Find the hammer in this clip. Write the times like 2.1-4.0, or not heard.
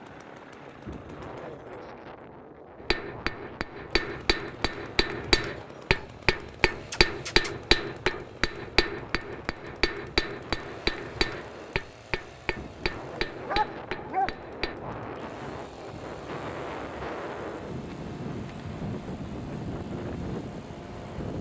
2.8-14.8.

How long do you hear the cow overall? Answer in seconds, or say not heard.
not heard.